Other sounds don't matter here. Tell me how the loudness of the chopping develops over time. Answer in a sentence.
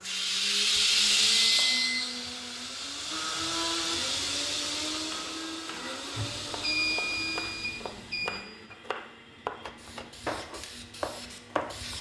The volume of the chopping goes up.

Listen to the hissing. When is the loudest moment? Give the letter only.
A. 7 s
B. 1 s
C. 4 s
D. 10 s
B.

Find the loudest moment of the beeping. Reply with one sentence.
The volume of the beeping peaks at 7 seconds.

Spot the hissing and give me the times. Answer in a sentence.
You can hear the hissing from 0.0 to 11.9 s.